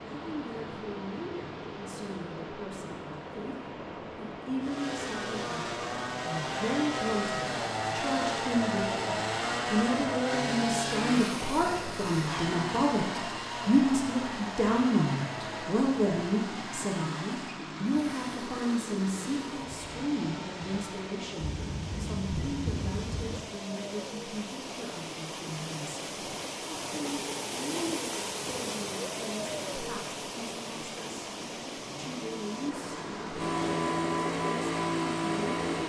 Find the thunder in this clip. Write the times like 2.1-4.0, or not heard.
21.4-23.4.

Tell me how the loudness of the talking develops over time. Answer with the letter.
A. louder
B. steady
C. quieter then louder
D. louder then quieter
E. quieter
D.